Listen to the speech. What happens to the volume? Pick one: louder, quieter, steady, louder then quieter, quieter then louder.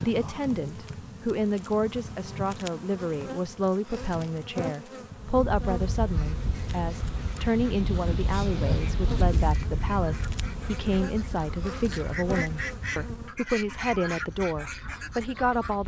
steady.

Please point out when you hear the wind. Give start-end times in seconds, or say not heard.
5.2-15.8.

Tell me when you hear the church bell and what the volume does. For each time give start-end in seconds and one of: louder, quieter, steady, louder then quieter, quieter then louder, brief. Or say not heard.
not heard.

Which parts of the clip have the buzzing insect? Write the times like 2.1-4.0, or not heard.
0.0-13.3.